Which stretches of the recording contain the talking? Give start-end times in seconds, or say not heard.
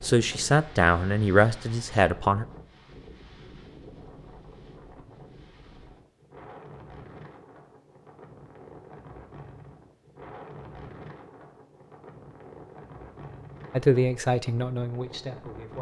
0.0-2.5, 13.7-15.7.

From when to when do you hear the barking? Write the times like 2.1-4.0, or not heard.
not heard.